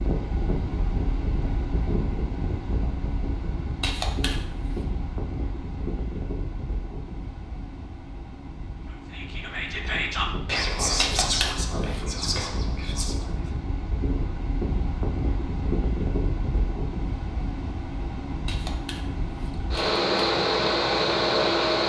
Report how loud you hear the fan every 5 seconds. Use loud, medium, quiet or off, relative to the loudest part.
medium, quiet, quiet, medium, loud.